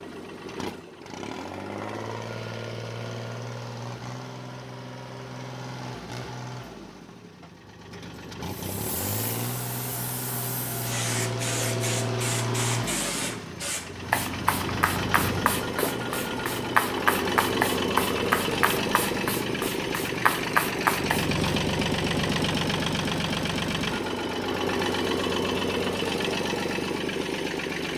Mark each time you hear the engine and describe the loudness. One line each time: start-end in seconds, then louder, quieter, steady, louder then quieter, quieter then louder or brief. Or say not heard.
0.0-27.9 louder.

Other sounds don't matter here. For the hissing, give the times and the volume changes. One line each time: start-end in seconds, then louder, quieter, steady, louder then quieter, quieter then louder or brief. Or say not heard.
8.7-21.6 louder.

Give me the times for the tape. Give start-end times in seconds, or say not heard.
not heard.